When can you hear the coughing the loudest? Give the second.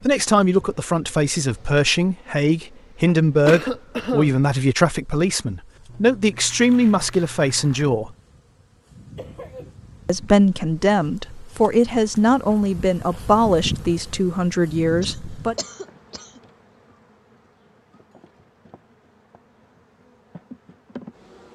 4 s.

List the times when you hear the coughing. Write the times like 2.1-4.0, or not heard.
3.5-4.4, 9.2-9.7, 15.0-16.4.